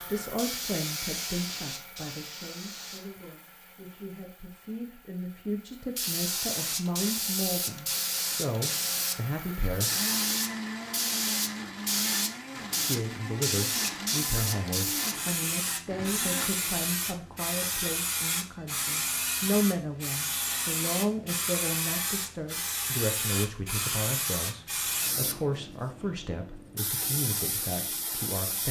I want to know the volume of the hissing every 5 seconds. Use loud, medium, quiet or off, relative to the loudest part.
medium, loud, loud, loud, loud, medium.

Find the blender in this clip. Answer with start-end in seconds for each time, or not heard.
0.0-16.5.